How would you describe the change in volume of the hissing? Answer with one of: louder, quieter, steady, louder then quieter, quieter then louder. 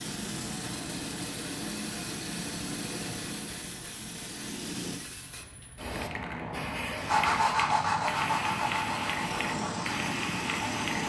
louder.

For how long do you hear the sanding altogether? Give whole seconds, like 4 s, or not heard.
4 s.